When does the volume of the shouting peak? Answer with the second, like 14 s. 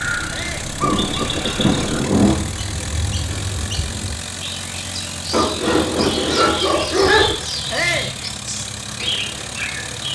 8 s.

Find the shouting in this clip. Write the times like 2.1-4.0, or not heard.
0.2-0.7, 7.7-8.2.